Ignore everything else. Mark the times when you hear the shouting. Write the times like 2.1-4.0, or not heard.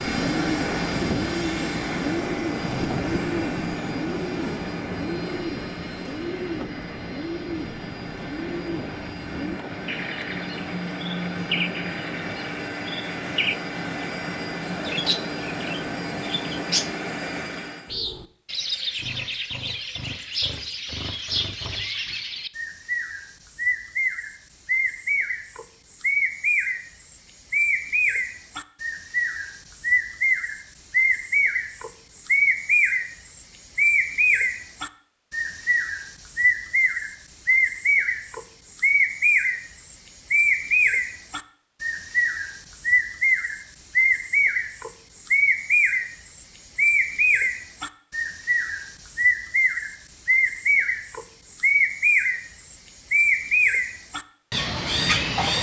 not heard.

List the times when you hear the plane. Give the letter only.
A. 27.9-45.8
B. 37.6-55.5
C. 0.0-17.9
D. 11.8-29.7
C.